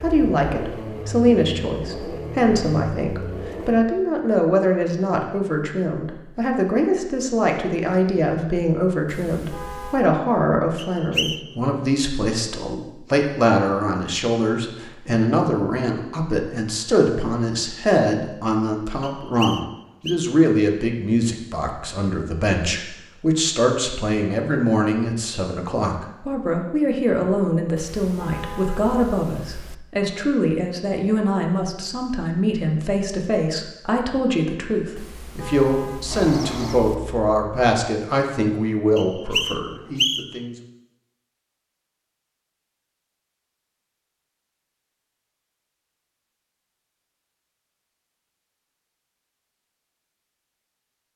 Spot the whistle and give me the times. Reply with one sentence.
The whistle can be heard from 10.8 to 11.5 s, from 19.0 to 20.2 s and from 39.0 to 40.4 s.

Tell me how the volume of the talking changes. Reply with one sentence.
The loudness of the talking stays about the same.